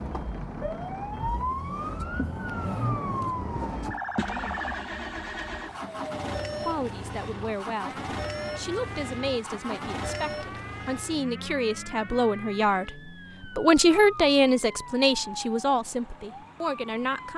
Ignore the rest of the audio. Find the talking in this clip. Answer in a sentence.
You can hear the talking from 6.7 to 17.3 s.